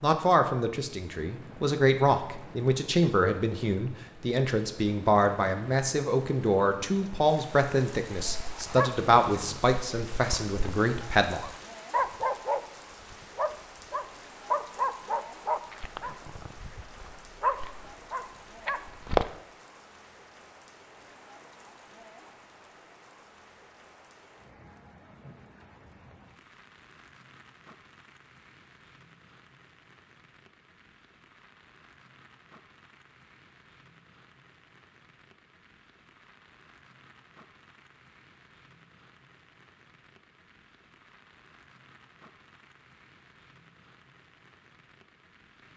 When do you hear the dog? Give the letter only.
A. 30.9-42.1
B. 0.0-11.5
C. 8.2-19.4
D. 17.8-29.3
C.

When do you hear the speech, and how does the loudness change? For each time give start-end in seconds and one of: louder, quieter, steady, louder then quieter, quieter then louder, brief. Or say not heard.
0.0-11.5 steady.